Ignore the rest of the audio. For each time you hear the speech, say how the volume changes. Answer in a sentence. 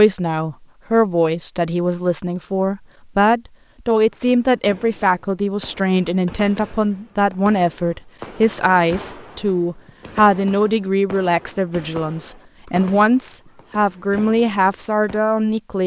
You can hear the speech from 0.0 to 15.8 s, at a steady volume.